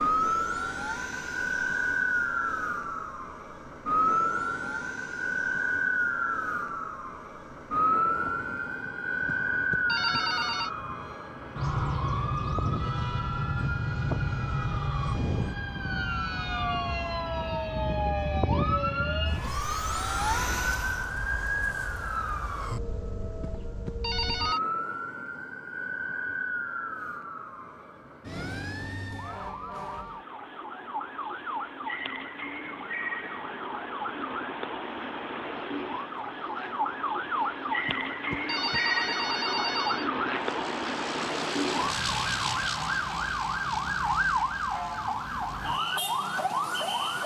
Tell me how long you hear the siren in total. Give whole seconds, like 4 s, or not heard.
47 s.